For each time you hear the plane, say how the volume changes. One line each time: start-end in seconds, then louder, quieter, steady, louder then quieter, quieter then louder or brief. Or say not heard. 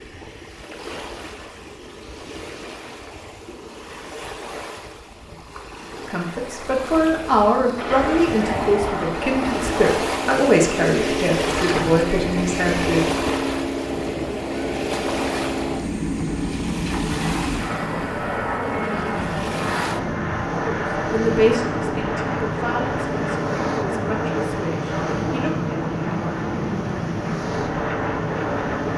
7.8-28.9 steady.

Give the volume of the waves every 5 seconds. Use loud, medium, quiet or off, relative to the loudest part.
medium, medium, loud, medium, medium, medium.